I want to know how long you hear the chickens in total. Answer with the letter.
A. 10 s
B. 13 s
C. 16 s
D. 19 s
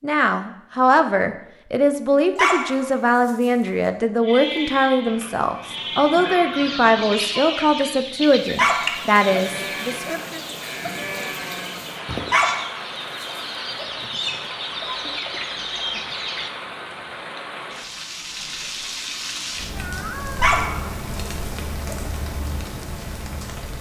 A.